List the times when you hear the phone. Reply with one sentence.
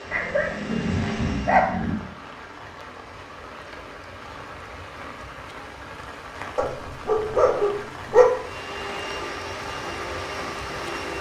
You can't hear the phone here.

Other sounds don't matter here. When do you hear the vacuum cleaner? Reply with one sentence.
You can hear the vacuum cleaner from 0.0 to 1.8 s and from 8.3 to 11.1 s.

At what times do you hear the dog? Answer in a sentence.
The dog can be heard from 0.1 to 1.9 s and from 6.5 to 8.2 s.